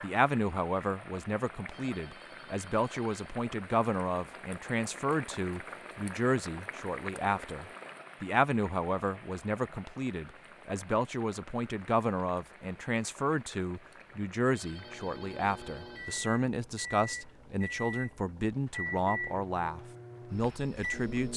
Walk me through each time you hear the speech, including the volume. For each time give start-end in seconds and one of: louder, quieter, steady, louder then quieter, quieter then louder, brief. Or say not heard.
0.0-21.3 steady.